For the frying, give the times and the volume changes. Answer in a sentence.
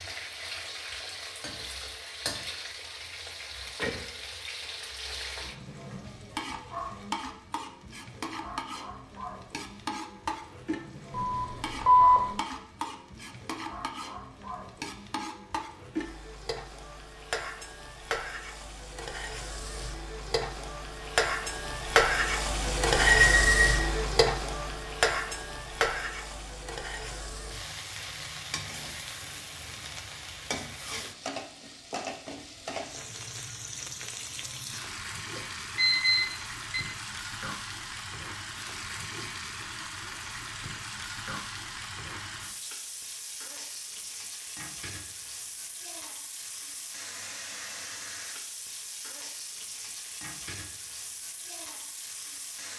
The frying can be heard from 0.0 to 52.7 s, getting louder then quieter.